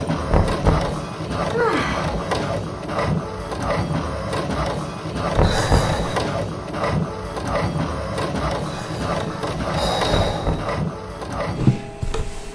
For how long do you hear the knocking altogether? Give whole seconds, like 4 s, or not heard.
2 s.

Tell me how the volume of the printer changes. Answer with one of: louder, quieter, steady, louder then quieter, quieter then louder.
steady.